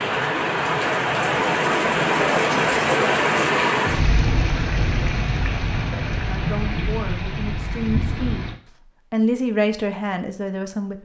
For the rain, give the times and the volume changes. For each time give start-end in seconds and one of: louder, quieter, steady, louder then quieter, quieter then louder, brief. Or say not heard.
0.0-8.6 quieter.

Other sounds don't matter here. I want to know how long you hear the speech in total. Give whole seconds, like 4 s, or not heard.
5 s.